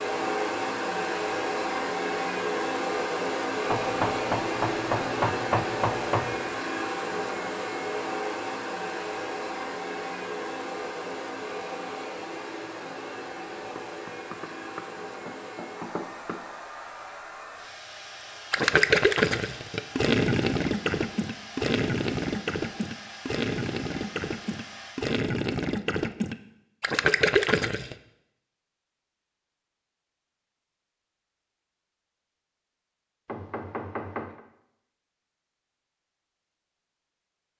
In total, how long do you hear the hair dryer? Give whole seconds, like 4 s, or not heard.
25 s.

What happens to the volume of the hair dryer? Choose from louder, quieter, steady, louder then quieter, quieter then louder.
quieter.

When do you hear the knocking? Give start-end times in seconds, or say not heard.
3.6-6.5, 13.8-16.4, 33.2-34.4.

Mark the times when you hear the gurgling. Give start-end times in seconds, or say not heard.
18.5-27.9.